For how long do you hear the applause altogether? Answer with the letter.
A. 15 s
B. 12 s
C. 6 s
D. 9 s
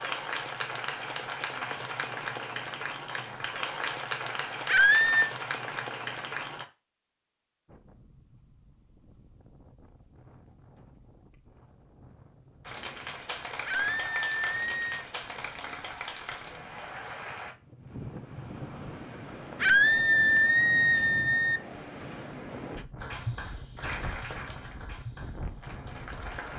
A.